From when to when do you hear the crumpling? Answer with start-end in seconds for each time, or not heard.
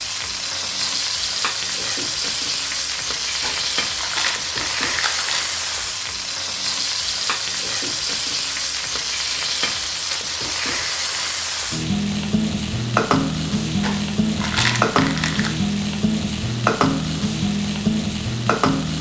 3.4-5.4, 13.8-15.6.